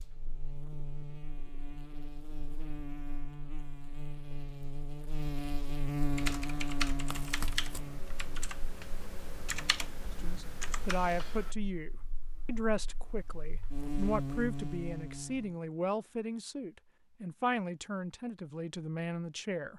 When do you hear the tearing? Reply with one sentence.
The tearing can be heard from 7.0 to 7.8 s.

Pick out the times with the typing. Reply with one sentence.
You can hear the typing from 6.1 to 11.6 s.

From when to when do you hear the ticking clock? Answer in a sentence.
You can't hear the ticking clock here.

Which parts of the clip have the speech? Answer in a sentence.
You can hear the speech from 10.2 to 19.7 s.